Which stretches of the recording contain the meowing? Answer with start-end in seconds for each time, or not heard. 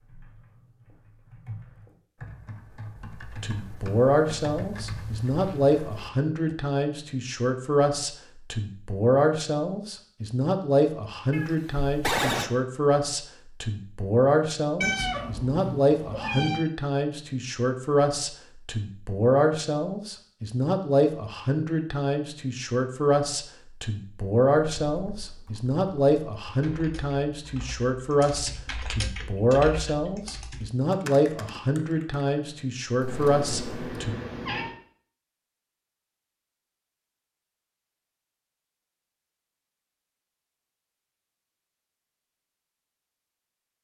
11.3-12.5, 14.8-16.6, 33.0-34.8.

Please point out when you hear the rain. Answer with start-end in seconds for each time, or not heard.
not heard.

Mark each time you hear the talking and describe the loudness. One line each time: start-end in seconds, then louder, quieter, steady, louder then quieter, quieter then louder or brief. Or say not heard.
3.4-34.1 steady.